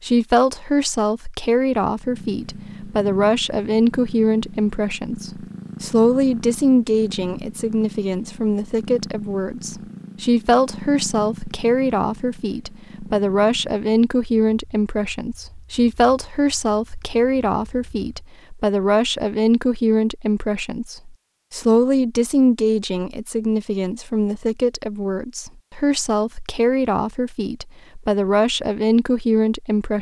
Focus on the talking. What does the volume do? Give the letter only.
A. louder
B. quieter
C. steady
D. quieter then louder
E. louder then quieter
C.